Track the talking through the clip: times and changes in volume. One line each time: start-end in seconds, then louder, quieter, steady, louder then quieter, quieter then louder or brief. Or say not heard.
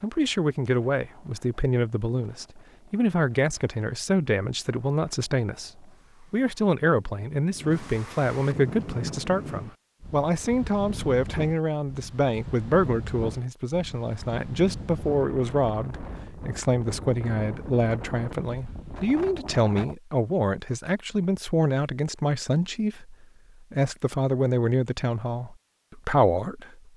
0.0-26.9 steady.